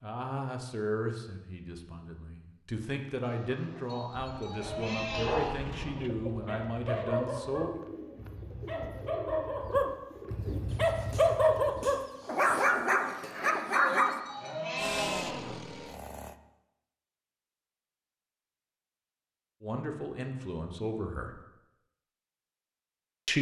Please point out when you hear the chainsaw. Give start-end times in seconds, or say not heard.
14.8-16.4.